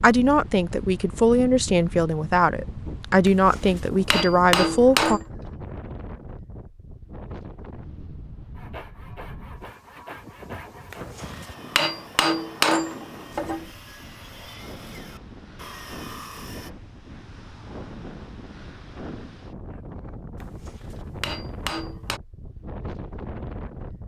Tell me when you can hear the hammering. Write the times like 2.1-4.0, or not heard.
3.2-5.2, 10.9-13.7, 20.4-22.2.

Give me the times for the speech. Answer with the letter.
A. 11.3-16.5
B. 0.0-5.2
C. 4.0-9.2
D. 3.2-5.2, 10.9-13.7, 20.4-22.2
B.